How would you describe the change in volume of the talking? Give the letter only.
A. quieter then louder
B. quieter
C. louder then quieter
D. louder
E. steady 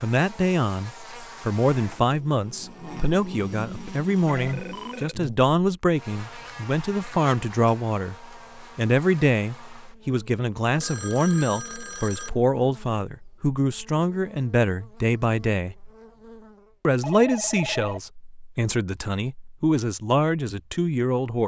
E.